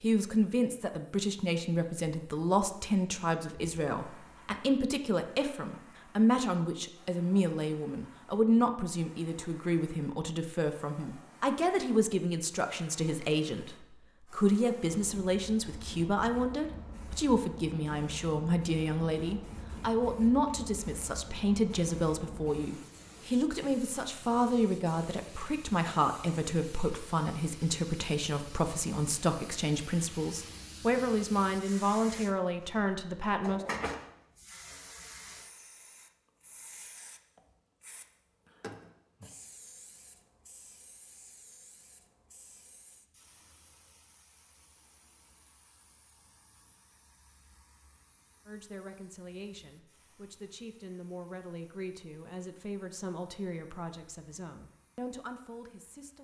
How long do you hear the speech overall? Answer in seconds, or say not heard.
41 s.